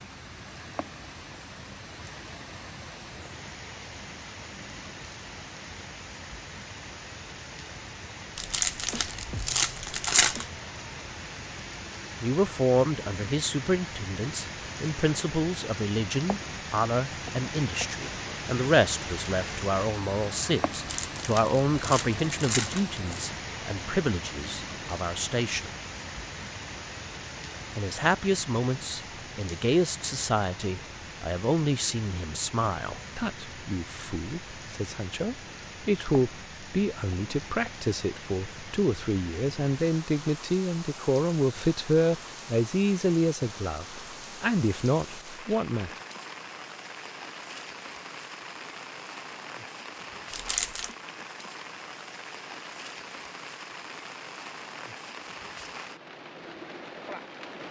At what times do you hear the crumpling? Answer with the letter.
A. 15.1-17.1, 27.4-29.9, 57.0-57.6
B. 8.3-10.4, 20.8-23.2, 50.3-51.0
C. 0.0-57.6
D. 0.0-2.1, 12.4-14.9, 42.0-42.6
B.